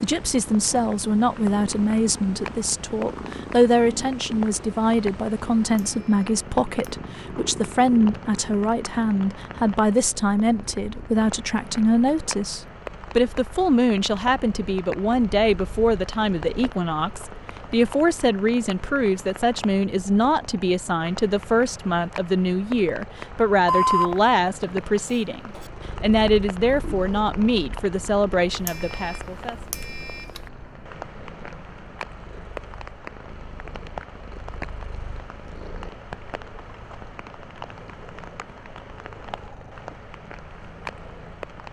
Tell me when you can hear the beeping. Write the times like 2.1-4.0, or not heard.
5.7-6.9, 23.6-25.6, 28.6-30.4.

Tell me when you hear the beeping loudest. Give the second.
24 s.